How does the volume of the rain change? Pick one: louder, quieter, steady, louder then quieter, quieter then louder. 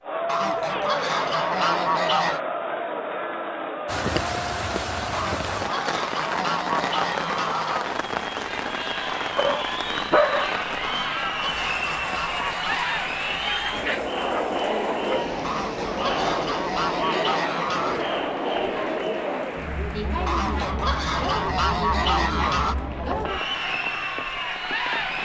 quieter.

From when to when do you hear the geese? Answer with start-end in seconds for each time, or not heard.
0.2-2.4, 5.1-7.9, 10.8-13.1, 15.4-18.1, 20.2-22.8.